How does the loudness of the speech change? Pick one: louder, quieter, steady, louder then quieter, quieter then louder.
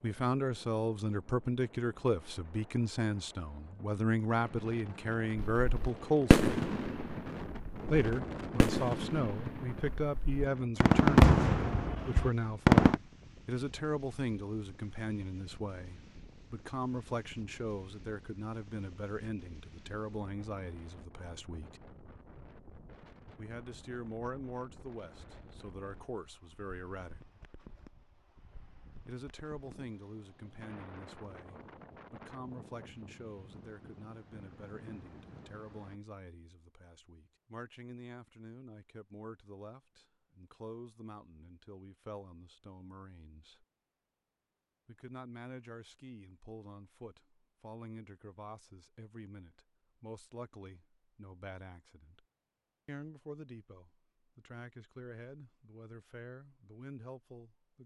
quieter.